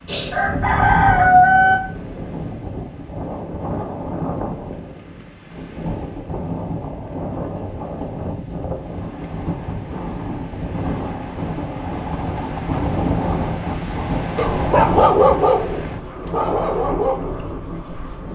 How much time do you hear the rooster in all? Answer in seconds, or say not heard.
2 s.